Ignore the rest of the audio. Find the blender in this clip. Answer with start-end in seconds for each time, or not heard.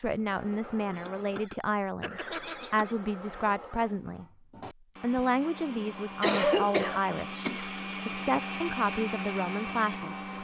0.0-10.3.